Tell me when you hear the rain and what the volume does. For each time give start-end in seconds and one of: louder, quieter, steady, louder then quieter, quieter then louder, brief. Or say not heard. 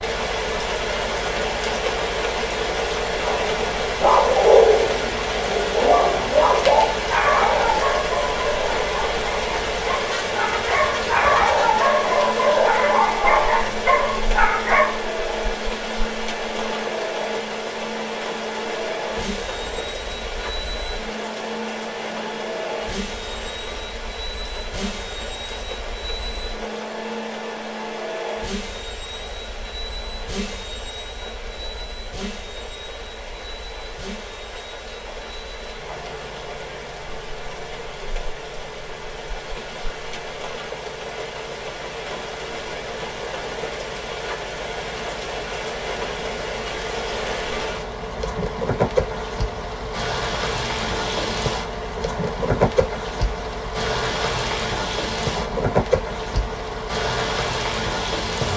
0.0-58.5 quieter then louder.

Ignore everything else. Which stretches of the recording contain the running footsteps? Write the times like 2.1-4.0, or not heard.
not heard.